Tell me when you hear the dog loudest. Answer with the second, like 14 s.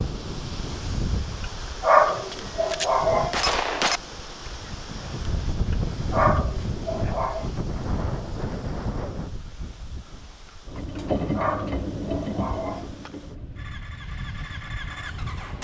2 s.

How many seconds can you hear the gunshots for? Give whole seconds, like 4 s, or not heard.
2 s.